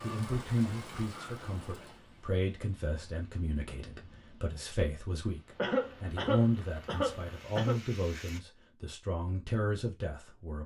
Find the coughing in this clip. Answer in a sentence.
The coughing can be heard from 5.5 to 7.8 s.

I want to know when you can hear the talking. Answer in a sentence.
The talking can be heard from 0.0 to 10.6 s.